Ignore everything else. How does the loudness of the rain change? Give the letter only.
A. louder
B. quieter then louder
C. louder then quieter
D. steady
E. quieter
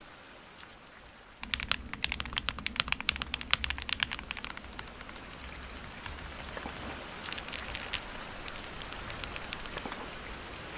A.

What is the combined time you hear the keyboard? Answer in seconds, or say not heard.
8 s.